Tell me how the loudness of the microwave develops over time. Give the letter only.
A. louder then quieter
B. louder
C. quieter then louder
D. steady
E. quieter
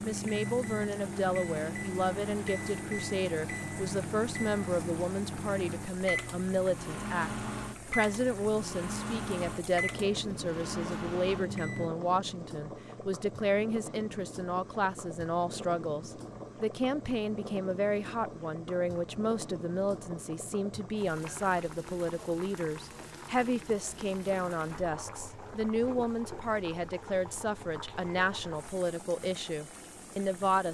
D.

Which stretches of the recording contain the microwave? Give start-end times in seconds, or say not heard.
0.0-11.9.